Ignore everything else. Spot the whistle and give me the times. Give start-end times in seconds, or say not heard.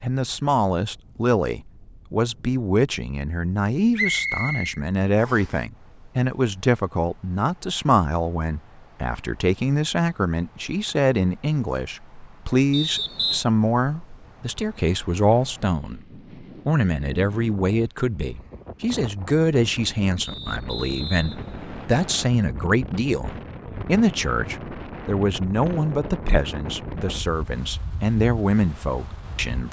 4.0-5.5, 12.7-13.4, 20.2-22.2.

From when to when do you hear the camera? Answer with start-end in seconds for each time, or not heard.
not heard.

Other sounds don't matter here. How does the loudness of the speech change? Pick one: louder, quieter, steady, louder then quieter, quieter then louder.
steady.